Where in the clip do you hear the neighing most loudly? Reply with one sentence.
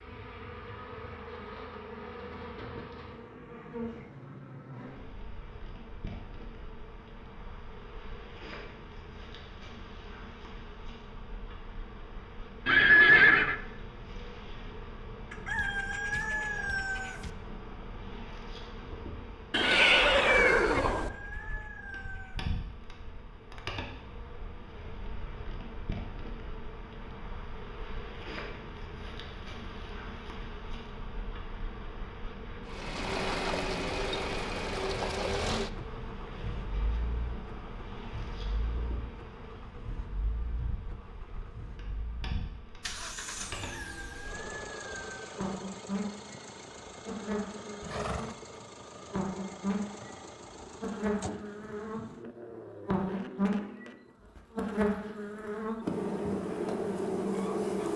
The volume of the neighing peaks at 13 seconds.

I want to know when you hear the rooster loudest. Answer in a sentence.
The volume of the rooster peaks at 16 seconds.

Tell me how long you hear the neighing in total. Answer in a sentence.
The neighing can be heard for 3 seconds in total.